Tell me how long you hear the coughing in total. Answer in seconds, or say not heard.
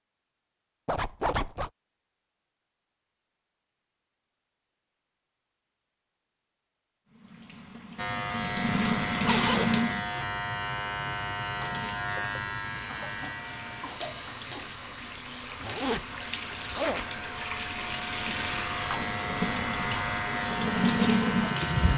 2 s.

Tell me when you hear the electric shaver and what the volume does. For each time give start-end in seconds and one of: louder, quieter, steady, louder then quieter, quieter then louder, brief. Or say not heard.
8.0-21.9 quieter then louder.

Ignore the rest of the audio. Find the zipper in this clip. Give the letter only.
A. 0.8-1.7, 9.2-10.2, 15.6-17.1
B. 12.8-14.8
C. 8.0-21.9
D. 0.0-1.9
A.